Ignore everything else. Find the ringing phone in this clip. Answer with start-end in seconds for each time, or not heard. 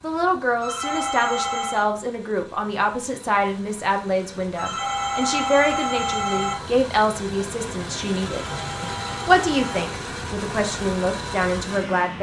0.6-1.9, 4.5-6.5, 8.2-9.9.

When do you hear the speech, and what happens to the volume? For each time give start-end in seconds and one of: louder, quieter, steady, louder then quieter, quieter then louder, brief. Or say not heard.
0.0-12.1 steady.